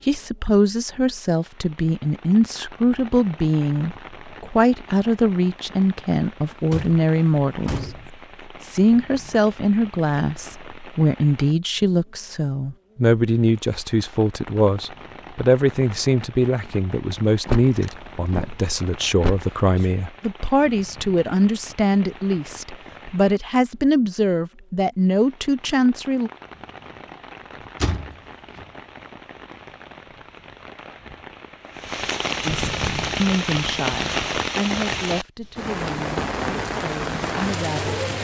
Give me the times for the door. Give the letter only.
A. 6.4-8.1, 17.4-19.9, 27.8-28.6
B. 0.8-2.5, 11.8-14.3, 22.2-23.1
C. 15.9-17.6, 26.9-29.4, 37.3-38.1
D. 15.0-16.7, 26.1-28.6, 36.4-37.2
A.